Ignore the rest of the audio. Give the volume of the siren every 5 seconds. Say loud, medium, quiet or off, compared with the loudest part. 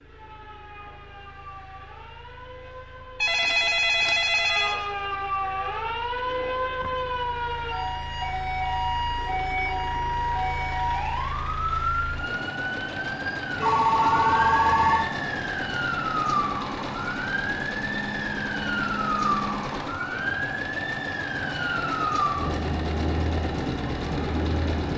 medium, loud, loud, loud, loud.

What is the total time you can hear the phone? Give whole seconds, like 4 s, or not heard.
3 s.